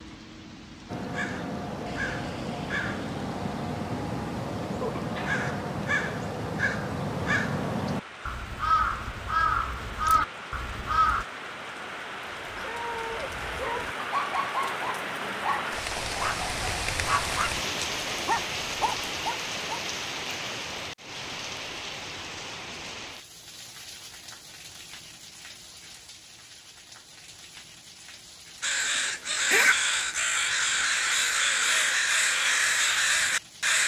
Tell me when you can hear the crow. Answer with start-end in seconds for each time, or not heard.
0.8-11.2, 28.6-33.8.